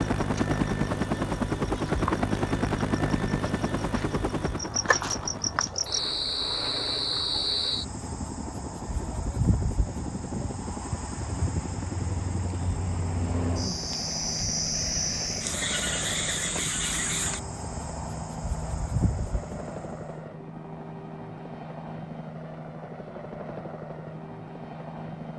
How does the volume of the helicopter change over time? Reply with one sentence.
The loudness of the helicopter goes down.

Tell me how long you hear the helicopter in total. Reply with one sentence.
The helicopter can be heard for 25 seconds in total.